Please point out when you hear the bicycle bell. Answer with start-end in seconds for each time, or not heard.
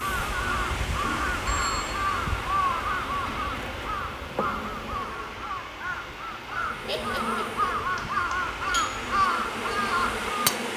1.4-2.0, 8.0-8.9.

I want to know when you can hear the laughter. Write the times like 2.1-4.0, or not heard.
6.8-7.7.